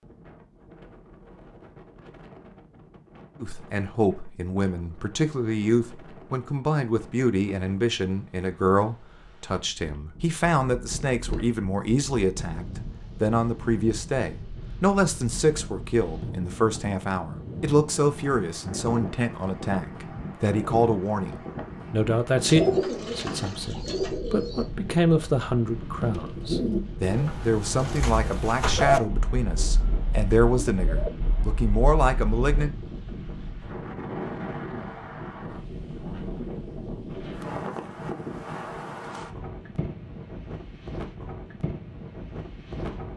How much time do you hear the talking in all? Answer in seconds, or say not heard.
29 s.